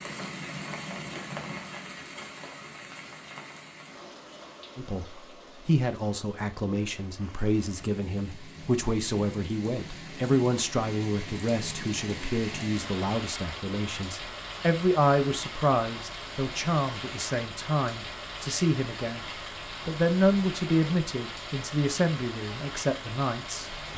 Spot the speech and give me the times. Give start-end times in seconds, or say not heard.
4.8-23.9.